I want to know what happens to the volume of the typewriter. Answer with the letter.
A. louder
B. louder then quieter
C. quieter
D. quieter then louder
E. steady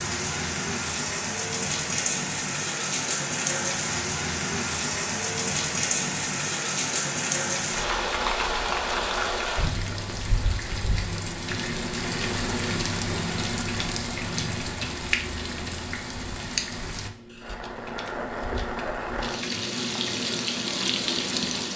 D.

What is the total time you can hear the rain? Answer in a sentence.
You can hear the rain for 22 seconds altogether.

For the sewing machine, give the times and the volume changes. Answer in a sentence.
You can't hear the sewing machine here.